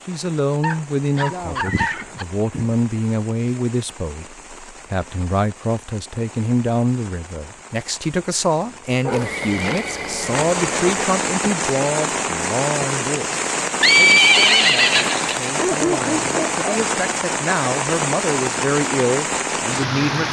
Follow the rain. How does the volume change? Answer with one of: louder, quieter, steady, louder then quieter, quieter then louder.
louder.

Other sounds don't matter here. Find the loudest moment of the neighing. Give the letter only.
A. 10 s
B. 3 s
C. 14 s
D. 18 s
C.